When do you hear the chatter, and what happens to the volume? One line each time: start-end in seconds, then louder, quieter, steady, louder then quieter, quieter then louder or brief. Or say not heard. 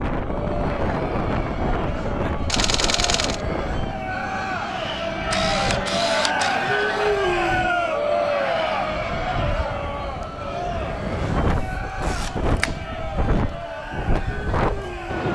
0.1-15.3 louder then quieter.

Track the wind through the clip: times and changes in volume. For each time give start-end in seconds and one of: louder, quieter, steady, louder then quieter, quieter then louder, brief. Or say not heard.
0.0-15.3 quieter then louder.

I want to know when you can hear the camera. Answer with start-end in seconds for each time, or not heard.
2.5-3.4, 5.2-6.8, 11.4-12.8.